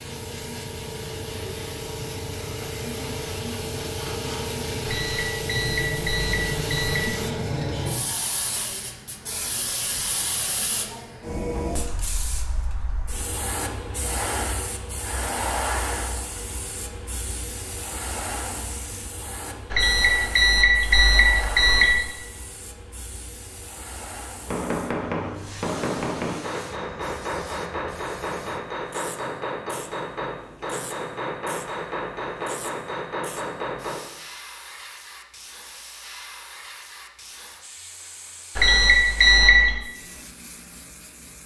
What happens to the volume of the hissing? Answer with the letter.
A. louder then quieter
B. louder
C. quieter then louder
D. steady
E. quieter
E.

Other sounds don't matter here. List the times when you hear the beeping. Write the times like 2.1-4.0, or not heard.
4.8-7.2, 19.7-21.9, 38.5-39.8.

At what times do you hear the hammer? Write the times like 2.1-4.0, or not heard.
24.4-34.0.